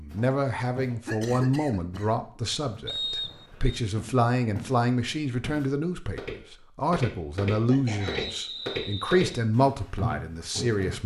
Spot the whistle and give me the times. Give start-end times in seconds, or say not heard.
2.9-3.8, 8.1-9.2.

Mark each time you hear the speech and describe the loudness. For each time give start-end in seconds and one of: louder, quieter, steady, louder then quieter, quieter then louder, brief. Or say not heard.
0.0-11.0 steady.